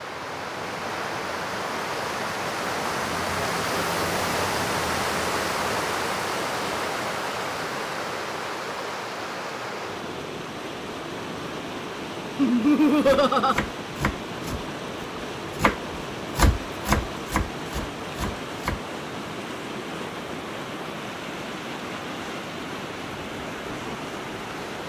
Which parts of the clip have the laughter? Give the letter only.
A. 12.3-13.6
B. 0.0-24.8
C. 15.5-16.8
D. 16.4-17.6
A.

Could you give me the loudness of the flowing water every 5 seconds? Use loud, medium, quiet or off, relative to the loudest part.
loud, loud, medium, medium, medium.